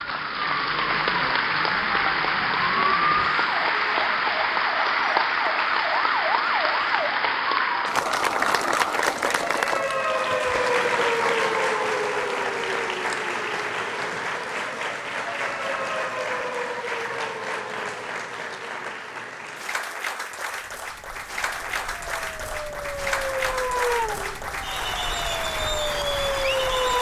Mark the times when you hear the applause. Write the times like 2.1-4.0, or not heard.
0.0-26.9.